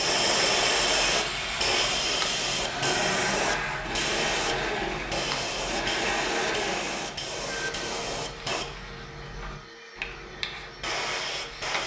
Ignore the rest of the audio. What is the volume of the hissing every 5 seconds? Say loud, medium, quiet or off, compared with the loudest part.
loud, medium, medium.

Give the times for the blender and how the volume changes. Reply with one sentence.
The blender can be heard from 0.0 to 11.7 s, getting quieter.